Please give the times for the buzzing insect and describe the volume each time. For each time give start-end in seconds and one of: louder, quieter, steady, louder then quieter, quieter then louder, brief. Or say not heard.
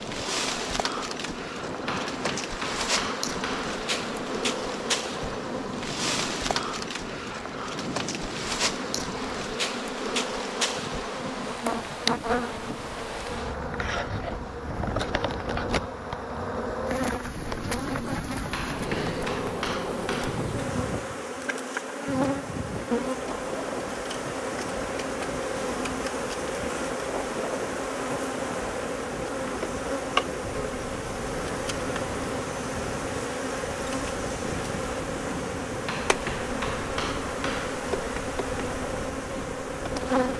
0.0-40.3 steady.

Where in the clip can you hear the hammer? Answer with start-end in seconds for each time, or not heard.
1.9-3.8, 18.5-20.4, 35.9-37.8.